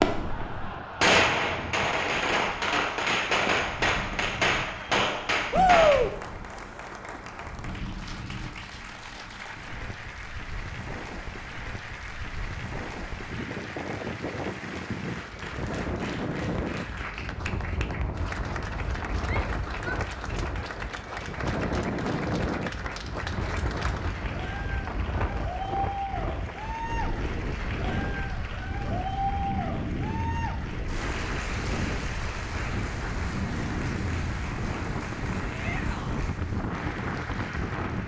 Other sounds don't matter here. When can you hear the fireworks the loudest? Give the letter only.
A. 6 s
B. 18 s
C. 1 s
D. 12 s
C.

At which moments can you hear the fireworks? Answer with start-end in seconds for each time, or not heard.
0.0-6.0.